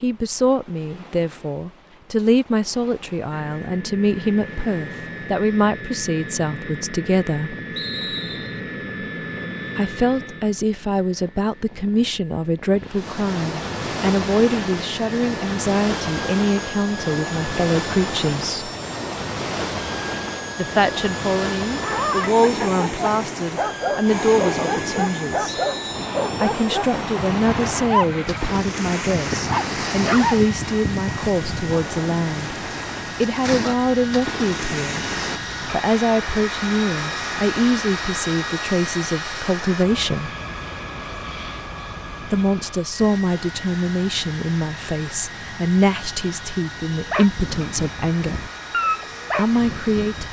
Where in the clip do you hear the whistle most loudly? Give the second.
8 s.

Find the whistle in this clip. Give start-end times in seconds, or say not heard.
7.8-8.6, 25.4-26.1.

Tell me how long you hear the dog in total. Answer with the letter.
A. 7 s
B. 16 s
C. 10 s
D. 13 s
D.